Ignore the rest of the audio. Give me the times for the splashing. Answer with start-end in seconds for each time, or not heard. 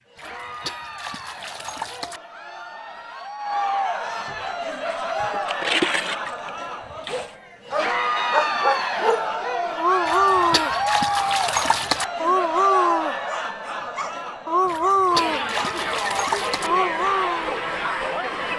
0.1-2.2, 4.9-7.3, 10.1-12.1, 14.7-16.7.